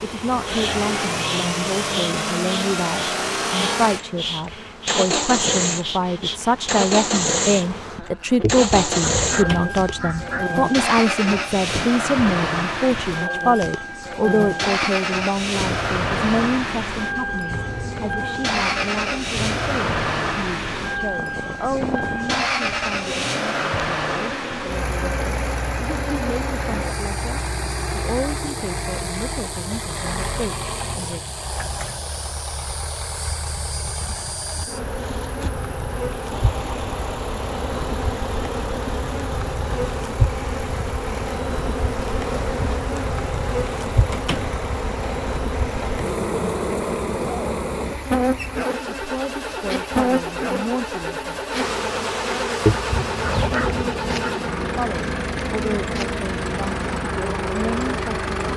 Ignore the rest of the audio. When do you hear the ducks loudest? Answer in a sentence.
The volume of the ducks peaks at 53 seconds.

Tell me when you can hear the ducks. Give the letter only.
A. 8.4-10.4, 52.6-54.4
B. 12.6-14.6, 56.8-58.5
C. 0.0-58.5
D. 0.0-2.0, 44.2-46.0
A.